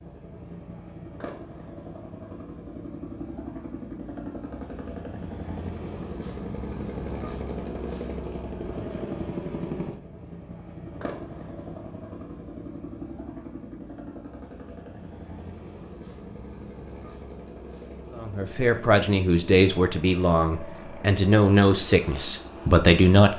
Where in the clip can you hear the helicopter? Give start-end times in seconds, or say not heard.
0.0-23.3.